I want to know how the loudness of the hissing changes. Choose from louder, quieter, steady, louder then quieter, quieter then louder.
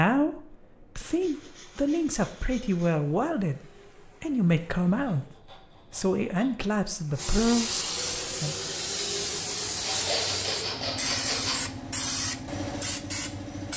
louder.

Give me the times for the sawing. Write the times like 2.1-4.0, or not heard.
1.0-3.0, 5.0-6.7, 9.8-11.7.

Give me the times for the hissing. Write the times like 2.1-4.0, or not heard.
0.2-13.7.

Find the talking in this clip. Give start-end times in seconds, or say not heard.
0.0-3.6, 4.2-5.2, 5.9-8.6.